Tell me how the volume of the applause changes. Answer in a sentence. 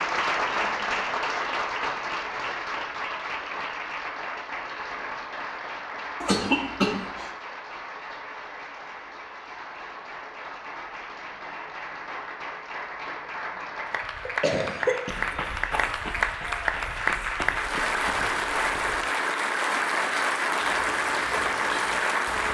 The loudness of the applause goes down, then up.